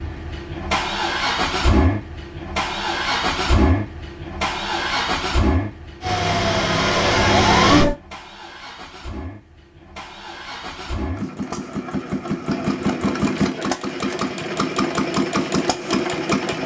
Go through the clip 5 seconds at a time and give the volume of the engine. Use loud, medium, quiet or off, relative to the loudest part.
loud, medium, loud, loud.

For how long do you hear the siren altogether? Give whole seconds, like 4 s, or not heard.
2 s.